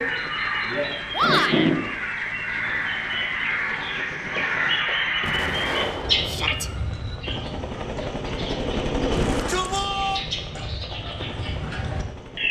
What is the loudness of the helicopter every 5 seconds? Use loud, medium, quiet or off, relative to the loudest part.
quiet, loud, medium.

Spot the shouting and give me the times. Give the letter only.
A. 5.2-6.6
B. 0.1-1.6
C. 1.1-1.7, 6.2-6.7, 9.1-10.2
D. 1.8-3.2
C.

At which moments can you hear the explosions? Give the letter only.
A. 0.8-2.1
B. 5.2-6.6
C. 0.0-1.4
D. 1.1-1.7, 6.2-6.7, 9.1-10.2
B.